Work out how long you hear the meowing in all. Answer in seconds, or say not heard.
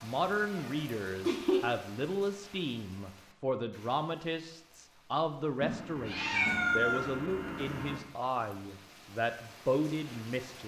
4 s.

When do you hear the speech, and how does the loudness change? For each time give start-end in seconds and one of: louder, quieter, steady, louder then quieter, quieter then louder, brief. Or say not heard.
0.0-10.6 steady.